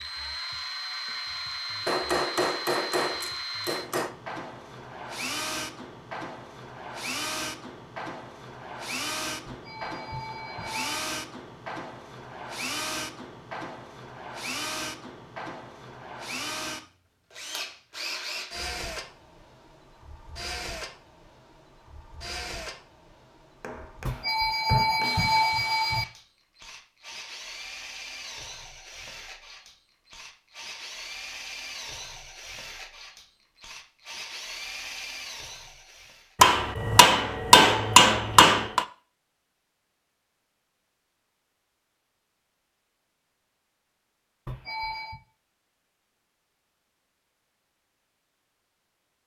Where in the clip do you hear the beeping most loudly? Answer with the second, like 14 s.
25 s.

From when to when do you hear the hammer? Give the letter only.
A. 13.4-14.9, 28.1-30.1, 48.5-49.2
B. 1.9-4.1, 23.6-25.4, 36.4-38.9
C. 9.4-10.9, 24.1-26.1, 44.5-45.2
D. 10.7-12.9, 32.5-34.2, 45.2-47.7
B.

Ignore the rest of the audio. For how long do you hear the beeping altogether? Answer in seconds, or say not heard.
4 s.